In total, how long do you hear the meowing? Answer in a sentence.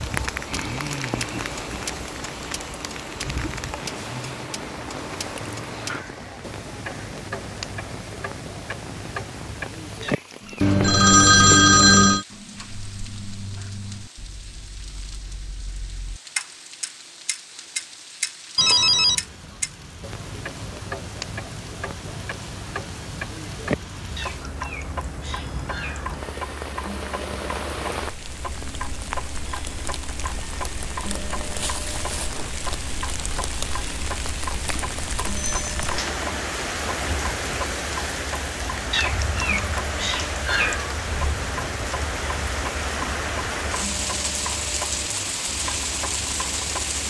You can hear the meowing for 5 seconds altogether.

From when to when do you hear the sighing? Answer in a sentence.
The sighing can't be heard in this clip.